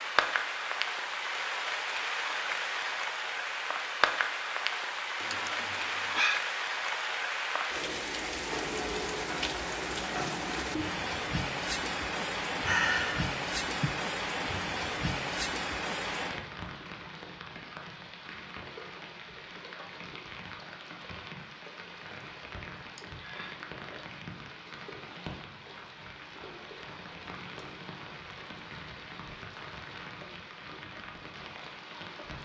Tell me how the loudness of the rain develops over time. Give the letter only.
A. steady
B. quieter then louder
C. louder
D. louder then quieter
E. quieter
E.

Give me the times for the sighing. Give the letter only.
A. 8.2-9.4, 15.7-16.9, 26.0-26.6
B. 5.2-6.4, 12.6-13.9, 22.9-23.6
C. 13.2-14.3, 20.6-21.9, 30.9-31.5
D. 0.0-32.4
B.